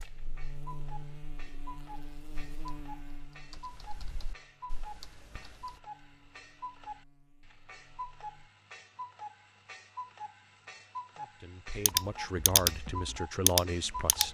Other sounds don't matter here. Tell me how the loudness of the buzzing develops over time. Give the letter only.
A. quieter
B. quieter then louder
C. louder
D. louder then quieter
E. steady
A.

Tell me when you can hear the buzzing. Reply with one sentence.
The buzzing can be heard from 0.0 to 8.5 s.